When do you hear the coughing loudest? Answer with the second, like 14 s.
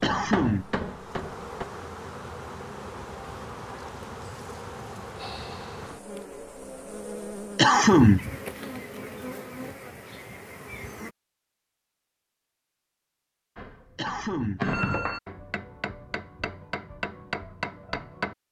8 s.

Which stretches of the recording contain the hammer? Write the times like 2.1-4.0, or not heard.
0.0-1.6, 13.6-18.4.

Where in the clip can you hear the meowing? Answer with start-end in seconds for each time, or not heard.
not heard.